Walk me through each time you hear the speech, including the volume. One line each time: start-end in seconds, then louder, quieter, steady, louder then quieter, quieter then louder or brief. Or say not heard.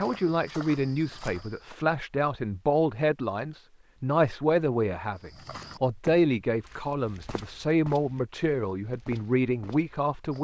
0.0-10.3 steady.